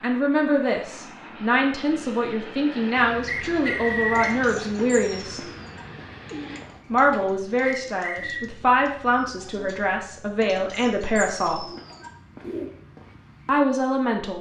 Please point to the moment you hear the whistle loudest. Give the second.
4 s.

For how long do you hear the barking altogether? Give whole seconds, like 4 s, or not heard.
not heard.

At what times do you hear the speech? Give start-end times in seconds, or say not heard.
0.0-5.4, 6.9-11.7, 13.4-14.3.